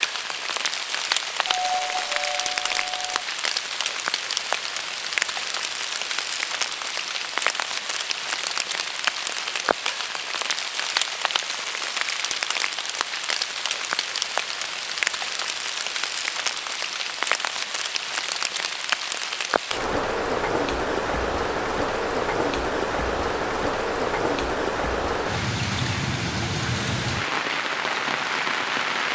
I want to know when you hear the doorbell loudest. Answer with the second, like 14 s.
2 s.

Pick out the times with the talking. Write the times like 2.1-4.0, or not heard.
not heard.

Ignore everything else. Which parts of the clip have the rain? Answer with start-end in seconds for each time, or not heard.
0.0-29.1.